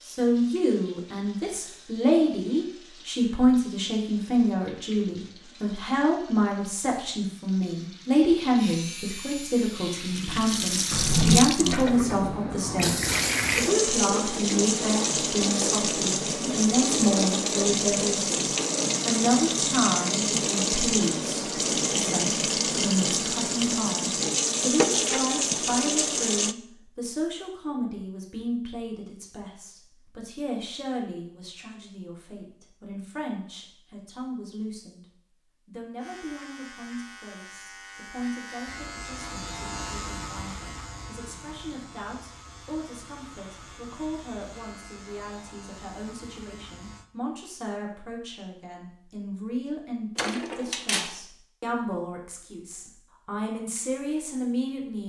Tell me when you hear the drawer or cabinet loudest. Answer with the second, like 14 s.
11 s.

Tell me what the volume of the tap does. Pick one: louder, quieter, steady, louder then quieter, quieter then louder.
louder.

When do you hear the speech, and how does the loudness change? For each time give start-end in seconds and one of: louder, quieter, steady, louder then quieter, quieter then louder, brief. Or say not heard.
0.1-35.0 quieter
35.6-55.0 louder.